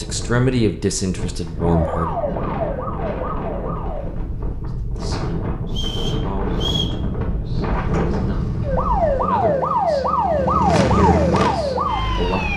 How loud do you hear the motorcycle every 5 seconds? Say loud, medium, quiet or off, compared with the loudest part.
off, medium, loud.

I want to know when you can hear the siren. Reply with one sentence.
The siren can be heard from 1.6 to 4.1 s and from 8.6 to 12.5 s.